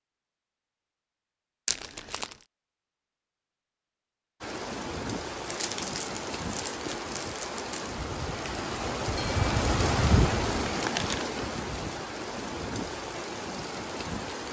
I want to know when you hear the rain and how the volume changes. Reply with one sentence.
You can hear the rain from 4.4 to 14.4 s, getting louder then quieter.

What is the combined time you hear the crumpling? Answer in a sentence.
The crumpling can be heard for 4 seconds in total.